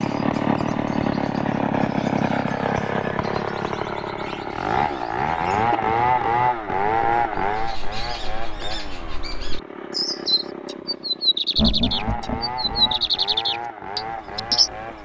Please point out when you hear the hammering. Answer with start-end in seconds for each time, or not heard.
not heard.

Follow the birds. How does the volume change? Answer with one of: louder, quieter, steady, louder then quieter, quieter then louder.
louder.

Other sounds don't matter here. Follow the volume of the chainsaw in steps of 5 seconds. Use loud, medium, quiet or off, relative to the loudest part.
loud, loud, medium.